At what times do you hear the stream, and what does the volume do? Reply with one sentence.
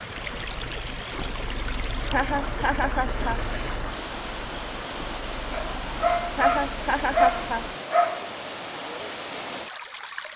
The stream can be heard from 0.0 to 10.3 s, at a steady volume.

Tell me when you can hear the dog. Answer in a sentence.
You can hear the dog from 5.5 to 8.3 s.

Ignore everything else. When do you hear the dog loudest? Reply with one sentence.
The loudest moment of the dog is at 7 seconds.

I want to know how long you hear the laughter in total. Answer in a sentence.
The laughter can be heard for 3 seconds in total.